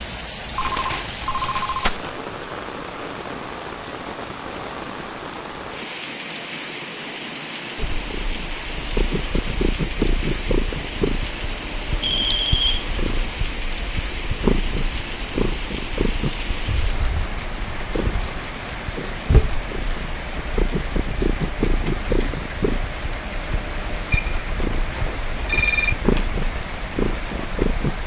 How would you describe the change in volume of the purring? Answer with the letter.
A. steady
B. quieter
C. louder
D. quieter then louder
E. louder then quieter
A.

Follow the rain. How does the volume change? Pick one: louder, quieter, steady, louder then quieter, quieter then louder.
steady.